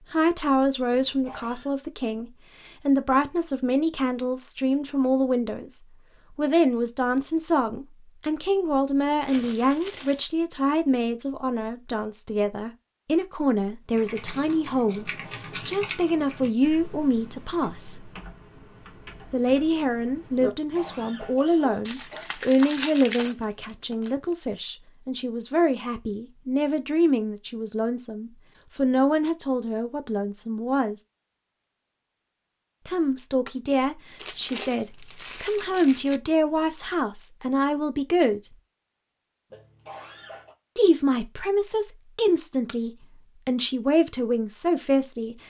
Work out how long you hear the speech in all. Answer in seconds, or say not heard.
40 s.